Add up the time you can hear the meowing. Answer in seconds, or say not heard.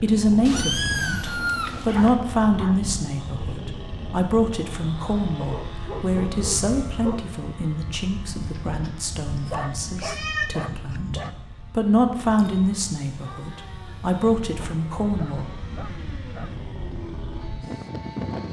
6 s.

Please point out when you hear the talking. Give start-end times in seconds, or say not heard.
0.0-15.5.